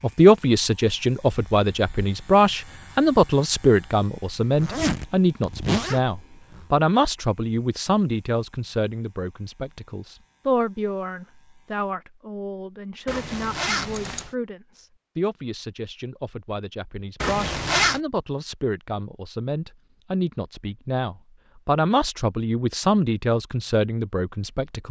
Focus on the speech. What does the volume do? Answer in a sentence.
The volume of the speech goes down, then up.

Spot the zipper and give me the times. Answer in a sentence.
You can hear the zipper from 4.5 to 6.7 s, from 13.1 to 14.3 s and from 17.2 to 18.0 s.